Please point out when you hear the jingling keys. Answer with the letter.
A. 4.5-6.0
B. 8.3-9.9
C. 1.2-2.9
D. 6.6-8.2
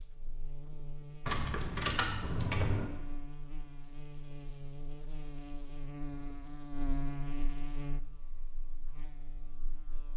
C.